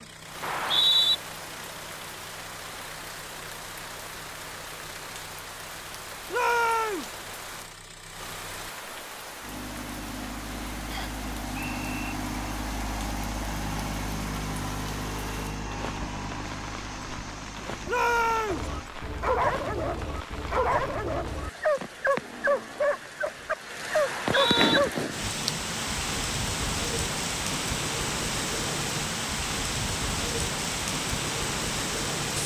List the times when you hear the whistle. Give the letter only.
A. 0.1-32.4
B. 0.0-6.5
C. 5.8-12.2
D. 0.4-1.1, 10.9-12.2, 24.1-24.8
D.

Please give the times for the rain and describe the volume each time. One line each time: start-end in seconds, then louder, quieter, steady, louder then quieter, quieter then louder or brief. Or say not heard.
0.1-32.4 louder.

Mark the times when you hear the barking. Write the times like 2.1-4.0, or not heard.
18.4-24.9.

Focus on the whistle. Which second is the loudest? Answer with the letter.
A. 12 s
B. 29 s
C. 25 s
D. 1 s
D.